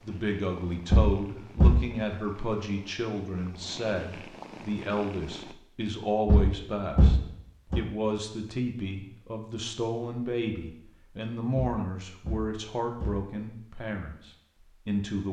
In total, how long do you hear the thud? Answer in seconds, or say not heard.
4 s.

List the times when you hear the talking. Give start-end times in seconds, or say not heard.
0.0-15.2.